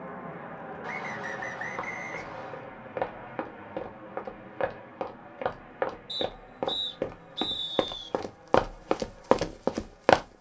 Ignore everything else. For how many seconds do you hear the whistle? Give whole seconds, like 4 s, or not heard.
4 s.